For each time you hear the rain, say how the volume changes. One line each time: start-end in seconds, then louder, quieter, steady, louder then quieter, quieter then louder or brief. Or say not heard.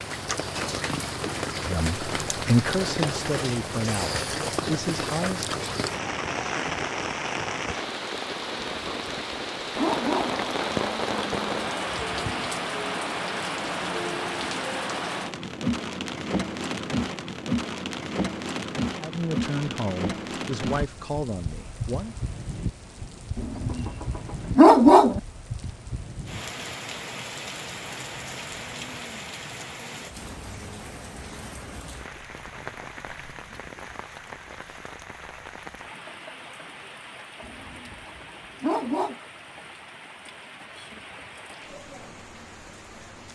0.0-43.3 quieter.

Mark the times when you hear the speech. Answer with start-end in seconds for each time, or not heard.
1.6-5.5, 18.9-22.1.